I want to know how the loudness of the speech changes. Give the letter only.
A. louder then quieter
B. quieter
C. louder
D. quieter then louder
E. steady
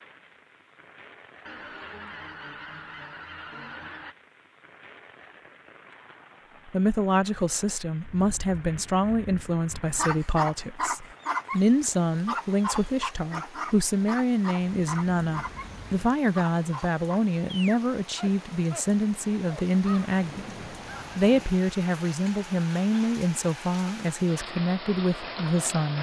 E.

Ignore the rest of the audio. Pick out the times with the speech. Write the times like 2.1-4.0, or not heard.
6.7-20.6, 21.1-25.9.